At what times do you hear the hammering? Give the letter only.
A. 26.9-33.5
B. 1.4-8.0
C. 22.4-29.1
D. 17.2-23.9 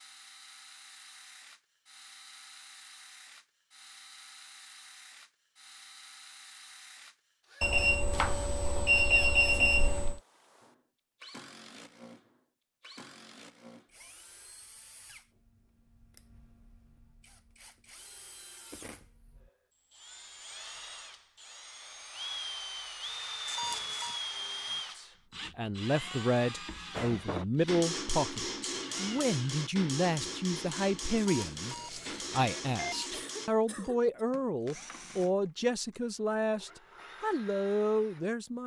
A.